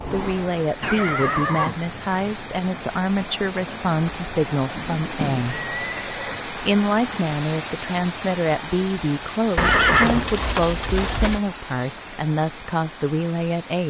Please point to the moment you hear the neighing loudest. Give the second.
10 s.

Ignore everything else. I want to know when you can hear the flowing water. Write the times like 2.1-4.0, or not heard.
0.0-13.8.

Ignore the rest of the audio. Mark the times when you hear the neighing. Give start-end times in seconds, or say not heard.
0.8-2.4, 4.8-6.5, 9.6-11.4.